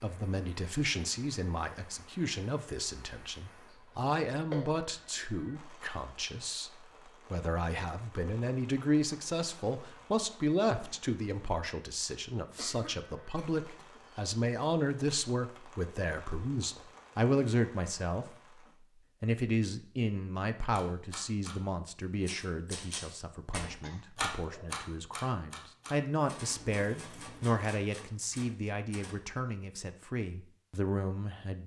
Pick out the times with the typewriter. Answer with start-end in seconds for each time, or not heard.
20.7-29.1.